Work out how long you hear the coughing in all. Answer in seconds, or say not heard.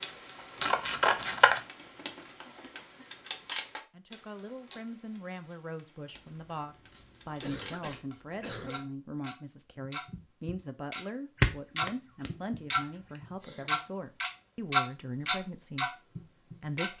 3 s.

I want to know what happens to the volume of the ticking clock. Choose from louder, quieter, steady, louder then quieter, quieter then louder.
quieter then louder.